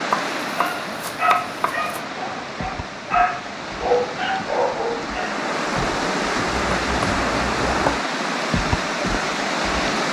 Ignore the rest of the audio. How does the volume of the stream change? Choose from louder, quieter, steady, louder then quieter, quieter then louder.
louder.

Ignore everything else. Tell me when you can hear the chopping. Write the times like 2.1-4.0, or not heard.
0.1-2.0, 6.5-8.0.